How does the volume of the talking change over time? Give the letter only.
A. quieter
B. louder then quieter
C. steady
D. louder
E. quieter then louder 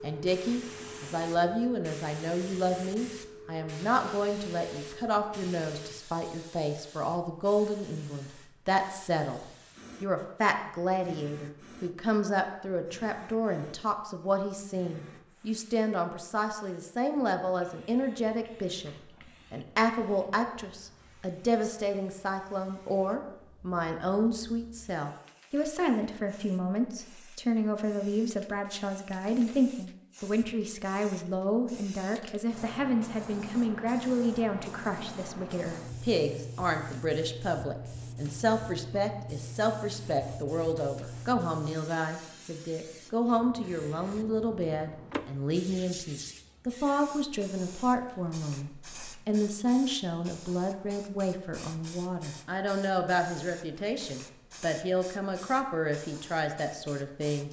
C.